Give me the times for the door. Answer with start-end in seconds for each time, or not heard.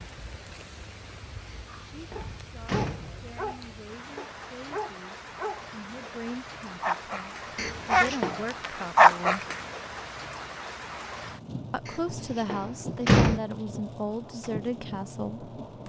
1.4-3.4, 7.5-8.3, 11.8-13.4.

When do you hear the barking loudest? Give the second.
9 s.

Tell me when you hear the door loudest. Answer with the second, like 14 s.
13 s.